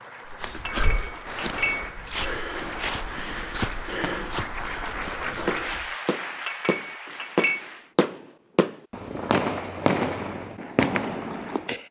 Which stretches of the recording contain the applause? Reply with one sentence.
The applause can be heard from 0.0 to 8.0 s.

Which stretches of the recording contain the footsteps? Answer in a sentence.
The footsteps can be heard from 0.2 to 5.9 s.